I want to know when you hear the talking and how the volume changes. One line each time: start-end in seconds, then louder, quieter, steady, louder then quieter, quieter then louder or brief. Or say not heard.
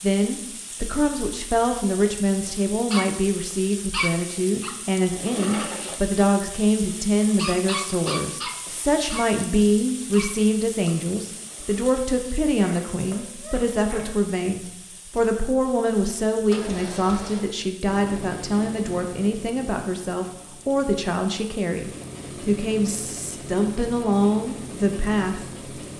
0.0-25.4 steady.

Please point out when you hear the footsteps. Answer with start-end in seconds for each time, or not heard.
not heard.